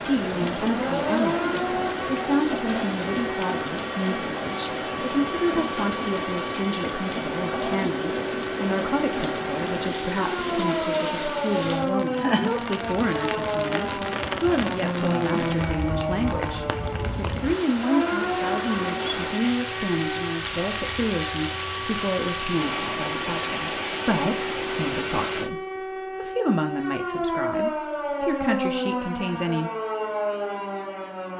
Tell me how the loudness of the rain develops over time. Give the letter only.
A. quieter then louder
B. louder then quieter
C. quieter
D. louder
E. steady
E.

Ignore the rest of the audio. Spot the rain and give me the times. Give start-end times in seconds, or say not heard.
0.0-25.5.